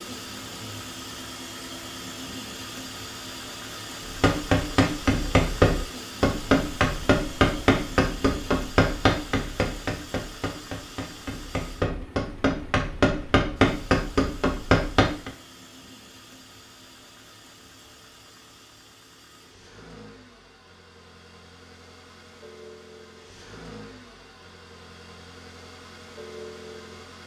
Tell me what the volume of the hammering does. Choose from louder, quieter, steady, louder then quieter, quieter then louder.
quieter then louder.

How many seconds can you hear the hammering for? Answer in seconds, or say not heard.
11 s.